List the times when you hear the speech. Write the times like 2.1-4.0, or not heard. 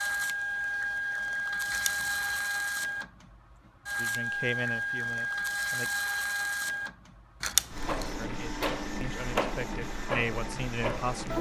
4.0-5.9, 8.2-11.3.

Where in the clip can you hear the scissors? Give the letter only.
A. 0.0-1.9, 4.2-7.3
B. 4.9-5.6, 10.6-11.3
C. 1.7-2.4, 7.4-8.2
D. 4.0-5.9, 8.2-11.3
C.